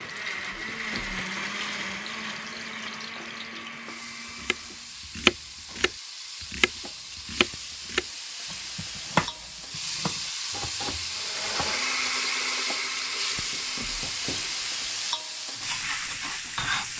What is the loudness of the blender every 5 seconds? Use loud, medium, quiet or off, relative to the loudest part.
loud, off, loud, off.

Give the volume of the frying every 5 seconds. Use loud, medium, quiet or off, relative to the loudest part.
quiet, medium, loud, loud.